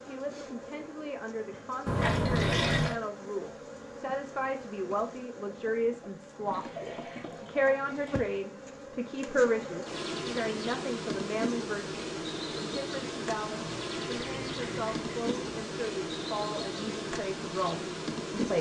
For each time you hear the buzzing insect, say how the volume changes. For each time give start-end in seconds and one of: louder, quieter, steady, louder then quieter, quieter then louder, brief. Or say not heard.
0.0-18.5 louder.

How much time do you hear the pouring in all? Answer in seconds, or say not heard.
5 s.